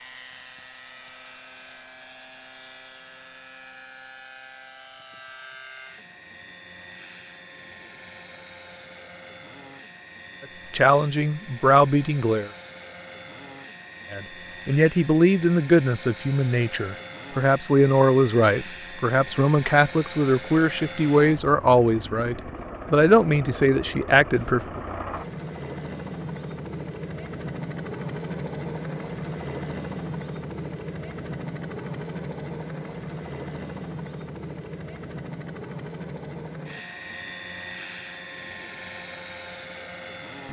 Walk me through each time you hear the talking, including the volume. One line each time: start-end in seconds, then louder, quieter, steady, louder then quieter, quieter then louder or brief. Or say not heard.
10.7-12.5 brief
14.1-24.8 steady.